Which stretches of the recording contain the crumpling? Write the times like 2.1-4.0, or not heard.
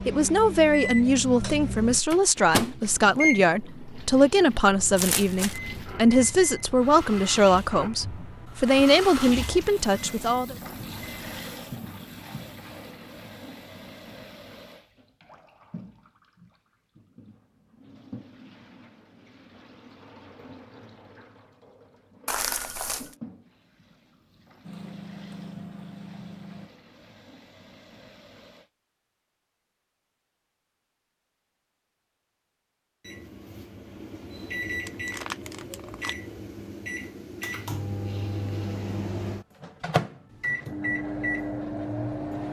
5.0-5.6, 22.2-23.1, 34.9-36.1.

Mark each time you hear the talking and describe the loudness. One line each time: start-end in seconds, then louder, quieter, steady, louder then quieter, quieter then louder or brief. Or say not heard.
0.1-10.6 steady.